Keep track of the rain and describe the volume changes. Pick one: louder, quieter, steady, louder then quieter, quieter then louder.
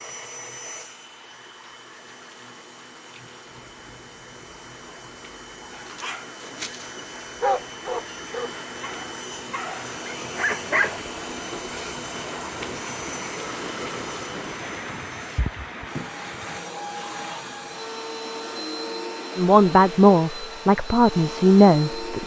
louder.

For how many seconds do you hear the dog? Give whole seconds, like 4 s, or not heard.
5 s.